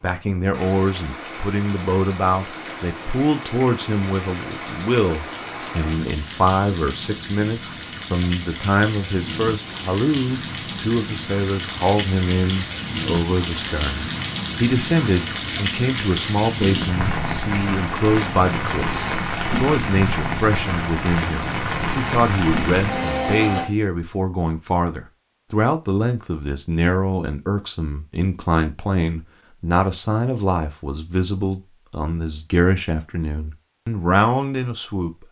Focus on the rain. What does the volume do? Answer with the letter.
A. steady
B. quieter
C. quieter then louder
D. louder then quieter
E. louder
E.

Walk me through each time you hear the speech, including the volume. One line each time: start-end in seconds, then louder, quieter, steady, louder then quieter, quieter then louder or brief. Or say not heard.
0.0-35.1 steady.